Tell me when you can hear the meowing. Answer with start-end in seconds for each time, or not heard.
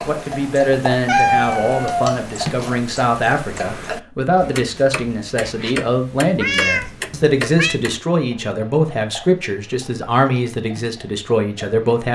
1.1-2.7, 6.4-7.8.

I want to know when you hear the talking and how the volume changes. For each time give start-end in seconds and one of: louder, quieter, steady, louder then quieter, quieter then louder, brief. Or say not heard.
0.1-12.0 steady.